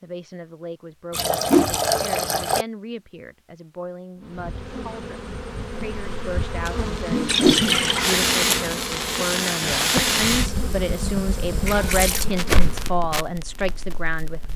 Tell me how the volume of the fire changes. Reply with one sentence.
The volume of the fire goes down.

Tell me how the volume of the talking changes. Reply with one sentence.
The loudness of the talking goes up.